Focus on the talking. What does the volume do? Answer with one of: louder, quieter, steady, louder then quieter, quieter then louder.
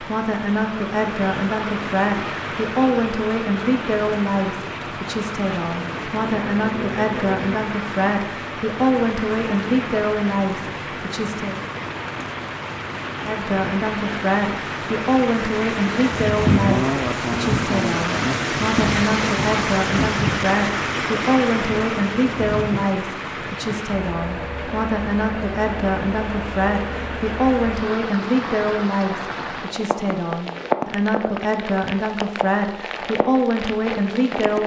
steady.